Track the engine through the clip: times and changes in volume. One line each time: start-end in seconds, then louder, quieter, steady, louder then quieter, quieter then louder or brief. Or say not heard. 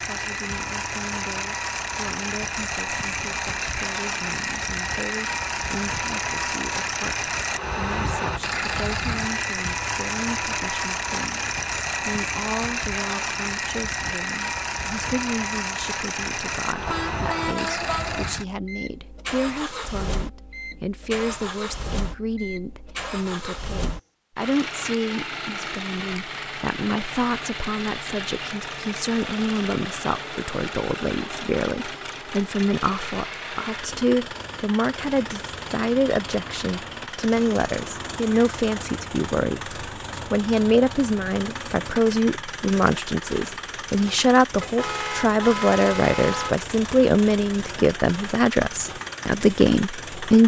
0.0-50.4 quieter.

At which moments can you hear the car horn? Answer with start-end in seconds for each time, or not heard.
16.9-18.2, 44.6-46.5.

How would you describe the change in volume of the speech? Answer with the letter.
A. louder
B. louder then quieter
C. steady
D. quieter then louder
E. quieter
A.